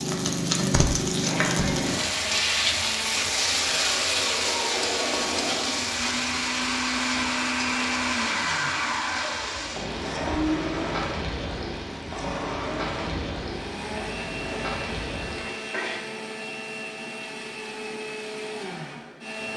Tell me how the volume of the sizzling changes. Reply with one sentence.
The volume of the sizzling goes down.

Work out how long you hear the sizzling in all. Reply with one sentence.
You can hear the sizzling for 16 seconds altogether.